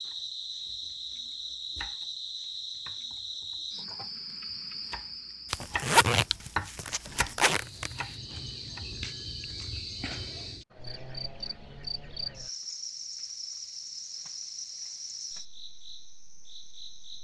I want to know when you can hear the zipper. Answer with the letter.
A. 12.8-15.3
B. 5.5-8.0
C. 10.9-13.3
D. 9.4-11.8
B.